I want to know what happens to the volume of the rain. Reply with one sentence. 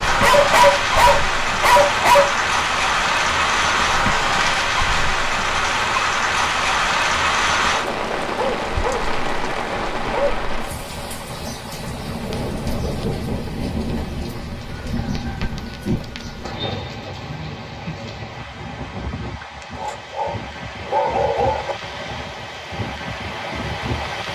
The volume of the rain goes down.